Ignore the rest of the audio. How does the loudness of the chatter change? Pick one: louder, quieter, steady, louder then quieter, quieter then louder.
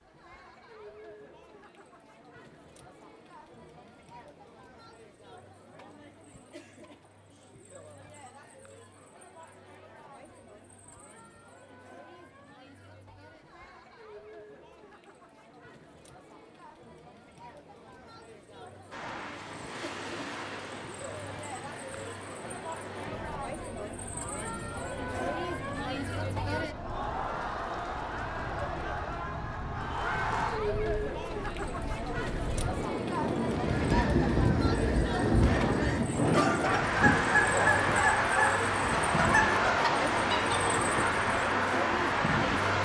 louder.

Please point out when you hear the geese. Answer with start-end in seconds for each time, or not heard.
33.5-40.8.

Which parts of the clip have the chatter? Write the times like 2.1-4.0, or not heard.
0.0-42.8.